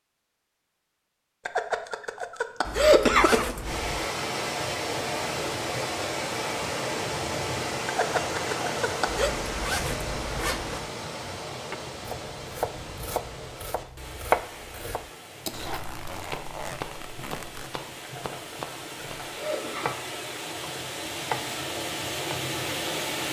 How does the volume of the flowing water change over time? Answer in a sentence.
The loudness of the flowing water goes down, then up.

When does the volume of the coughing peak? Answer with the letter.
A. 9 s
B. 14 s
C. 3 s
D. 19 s
C.